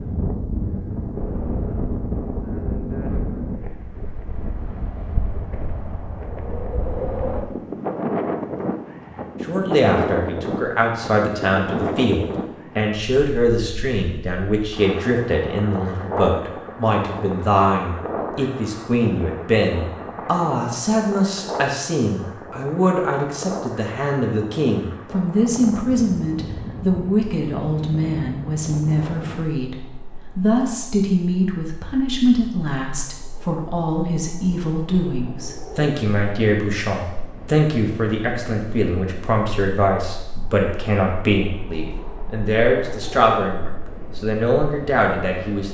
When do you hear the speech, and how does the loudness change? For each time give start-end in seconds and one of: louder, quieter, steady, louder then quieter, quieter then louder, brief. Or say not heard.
9.4-45.6 steady.